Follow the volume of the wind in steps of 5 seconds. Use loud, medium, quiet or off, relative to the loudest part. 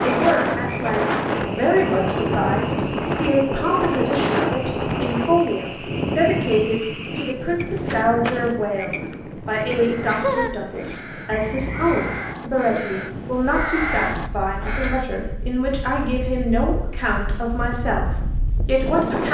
loud, medium, quiet, medium.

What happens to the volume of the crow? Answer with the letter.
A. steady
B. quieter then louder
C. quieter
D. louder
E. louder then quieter
D.